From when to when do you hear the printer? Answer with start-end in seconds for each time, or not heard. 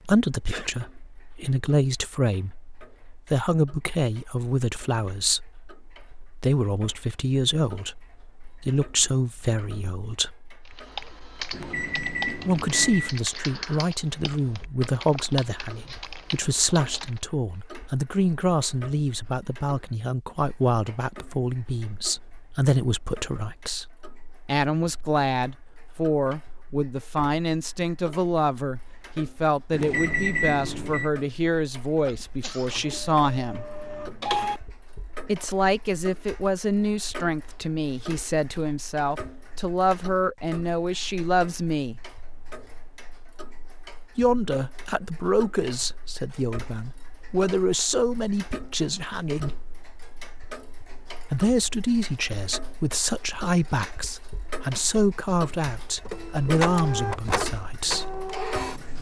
32.6-34.6, 55.9-58.9.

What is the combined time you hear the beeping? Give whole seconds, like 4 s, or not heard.
3 s.